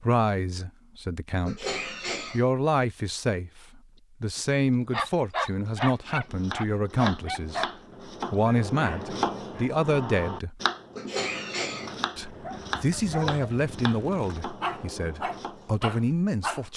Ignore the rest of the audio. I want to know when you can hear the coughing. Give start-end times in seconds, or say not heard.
1.4-2.5, 10.9-11.9.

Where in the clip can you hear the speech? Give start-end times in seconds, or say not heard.
0.0-7.7, 8.3-10.6, 12.2-16.7.